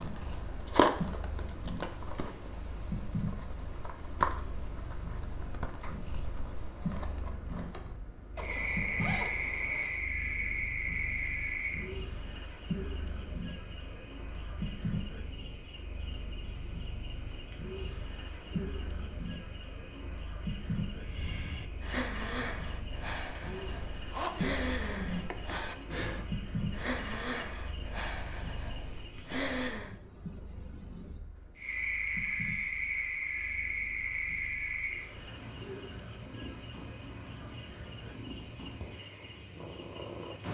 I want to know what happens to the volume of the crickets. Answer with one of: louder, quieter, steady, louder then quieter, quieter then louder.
quieter then louder.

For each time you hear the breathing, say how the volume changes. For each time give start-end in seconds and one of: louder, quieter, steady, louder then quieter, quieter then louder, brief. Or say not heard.
20.9-29.9 steady.